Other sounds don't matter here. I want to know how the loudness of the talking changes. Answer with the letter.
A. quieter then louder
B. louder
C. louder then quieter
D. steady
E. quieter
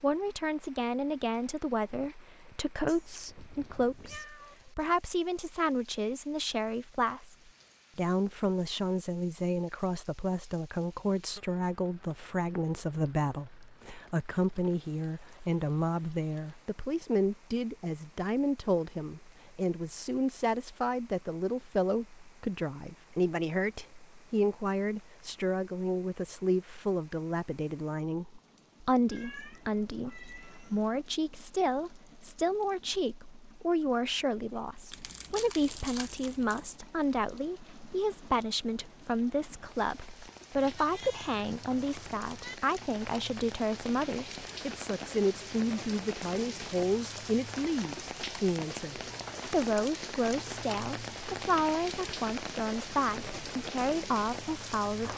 D.